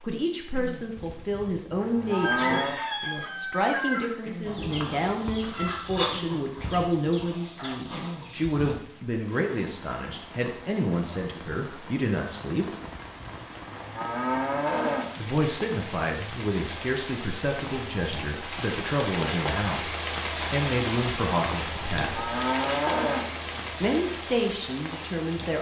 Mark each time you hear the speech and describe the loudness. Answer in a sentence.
You can hear the speech from 0.0 to 12.7 s, at a steady volume; from 15.2 to 22.3 s, at a steady volume; and briefly from 23.8 to 25.5 s.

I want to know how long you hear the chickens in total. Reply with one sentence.
The chickens can be heard for 7 seconds in total.